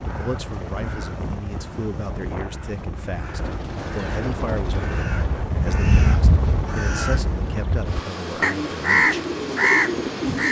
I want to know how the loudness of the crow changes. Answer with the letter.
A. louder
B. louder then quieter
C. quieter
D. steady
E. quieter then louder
A.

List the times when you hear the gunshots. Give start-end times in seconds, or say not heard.
3.5-5.5.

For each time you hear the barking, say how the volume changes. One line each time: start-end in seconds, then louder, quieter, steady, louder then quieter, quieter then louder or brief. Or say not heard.
not heard.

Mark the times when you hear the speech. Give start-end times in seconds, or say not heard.
0.0-9.2.